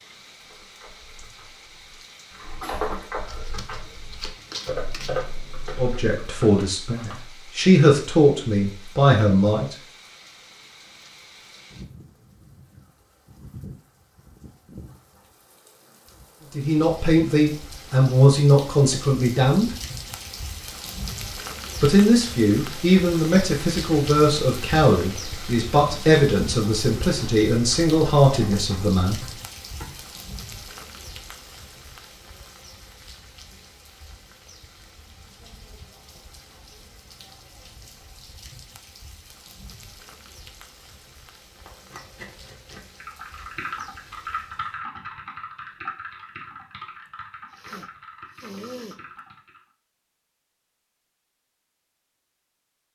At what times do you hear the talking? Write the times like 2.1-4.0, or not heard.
5.8-9.8, 16.6-19.7, 21.8-29.2.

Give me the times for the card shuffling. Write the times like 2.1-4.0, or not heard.
3.2-5.2, 41.6-43.0.